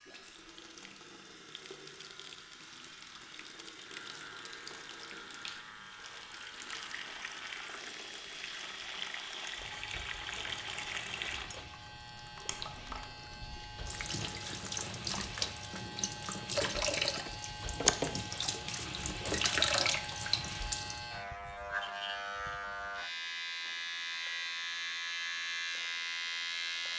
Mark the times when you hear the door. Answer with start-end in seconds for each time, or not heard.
not heard.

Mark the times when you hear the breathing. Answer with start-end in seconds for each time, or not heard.
not heard.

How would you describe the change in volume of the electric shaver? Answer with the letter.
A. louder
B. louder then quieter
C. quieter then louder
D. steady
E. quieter
A.